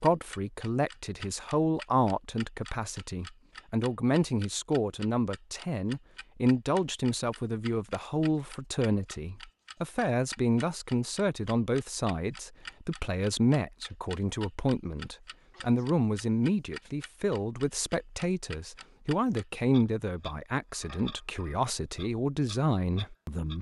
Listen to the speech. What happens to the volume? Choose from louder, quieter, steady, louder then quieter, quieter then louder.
steady.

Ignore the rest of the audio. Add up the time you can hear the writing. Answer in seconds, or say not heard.
not heard.